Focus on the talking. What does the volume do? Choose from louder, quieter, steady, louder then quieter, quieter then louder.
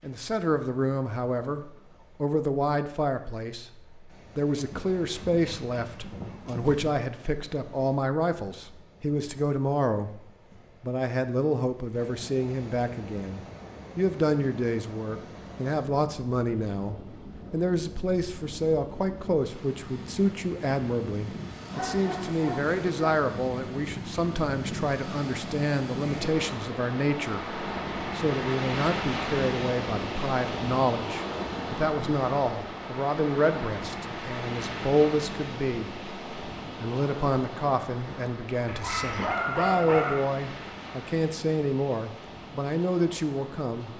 steady.